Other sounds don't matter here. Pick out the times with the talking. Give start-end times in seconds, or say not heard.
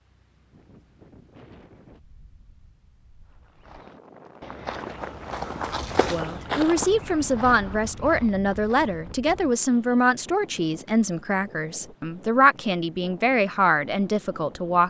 6.1-14.8.